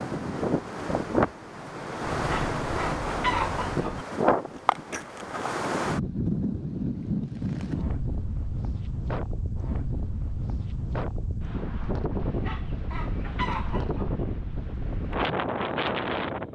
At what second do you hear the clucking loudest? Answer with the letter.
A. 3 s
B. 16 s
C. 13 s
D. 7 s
A.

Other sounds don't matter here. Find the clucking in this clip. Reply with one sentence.
The clucking can be heard from 2.0 to 4.0 s and from 12.2 to 14.1 s.